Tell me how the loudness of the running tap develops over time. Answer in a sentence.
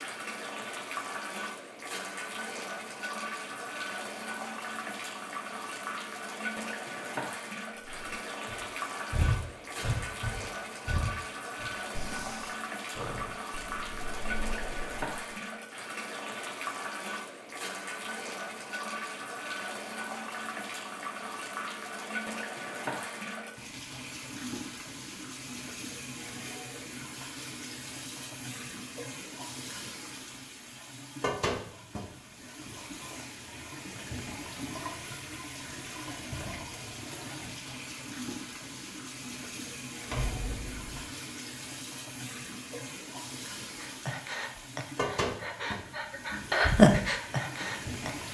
The volume of the running tap stays about the same.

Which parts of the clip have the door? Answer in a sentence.
You can hear the door from 40.0 to 41.1 s.